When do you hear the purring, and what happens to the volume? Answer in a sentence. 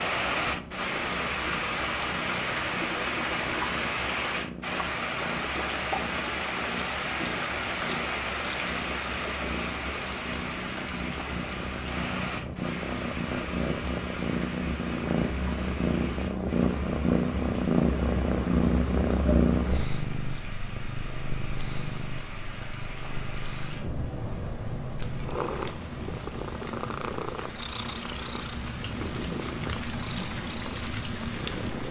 You can hear the purring from 0.0 to 31.8 s, getting louder then quieter.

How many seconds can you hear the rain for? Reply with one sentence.
You can hear the rain for 32 seconds altogether.